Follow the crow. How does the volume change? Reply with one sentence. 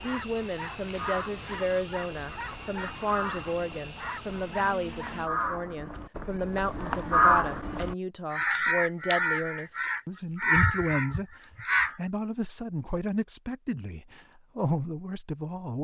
The volume of the crow goes up.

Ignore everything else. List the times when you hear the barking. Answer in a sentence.
You can hear the barking from 0.0 to 5.6 s.